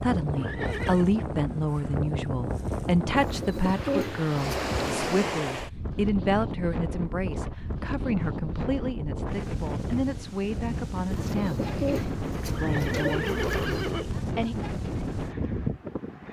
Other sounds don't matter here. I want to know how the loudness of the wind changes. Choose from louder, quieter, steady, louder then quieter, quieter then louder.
steady.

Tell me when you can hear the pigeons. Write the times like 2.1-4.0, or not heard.
3.1-4.8, 11.1-13.9.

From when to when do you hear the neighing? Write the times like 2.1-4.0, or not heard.
0.3-1.1, 12.4-14.1.